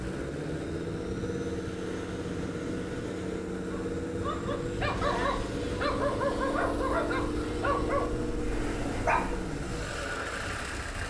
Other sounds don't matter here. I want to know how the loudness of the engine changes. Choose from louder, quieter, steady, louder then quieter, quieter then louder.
steady.